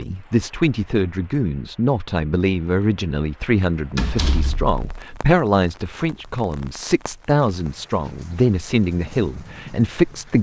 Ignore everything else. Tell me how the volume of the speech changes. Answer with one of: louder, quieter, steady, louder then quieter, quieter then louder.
steady.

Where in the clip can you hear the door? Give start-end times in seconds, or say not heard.
4.0-5.0.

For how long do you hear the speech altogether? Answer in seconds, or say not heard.
10 s.